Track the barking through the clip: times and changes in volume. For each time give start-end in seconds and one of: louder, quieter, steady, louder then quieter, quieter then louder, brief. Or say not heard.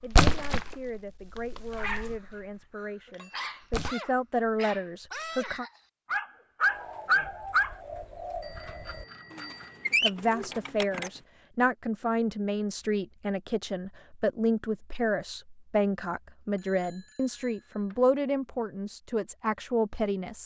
1.7-7.8 louder.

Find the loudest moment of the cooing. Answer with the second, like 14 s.
10 s.